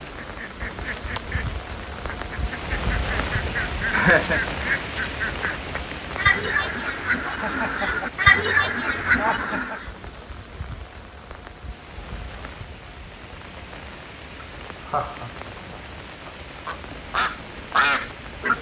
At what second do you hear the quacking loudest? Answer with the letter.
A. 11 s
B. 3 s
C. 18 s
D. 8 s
D.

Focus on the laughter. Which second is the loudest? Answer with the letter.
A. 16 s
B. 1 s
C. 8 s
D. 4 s
D.